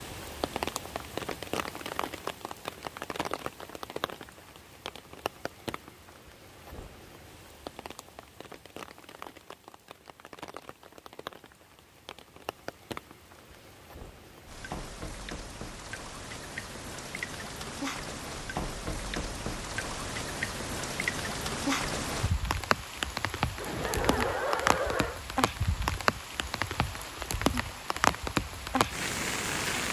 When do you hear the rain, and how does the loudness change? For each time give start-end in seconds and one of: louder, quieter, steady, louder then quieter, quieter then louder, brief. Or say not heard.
0.0-29.8 quieter then louder.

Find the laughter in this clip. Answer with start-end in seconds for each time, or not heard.
23.6-25.2.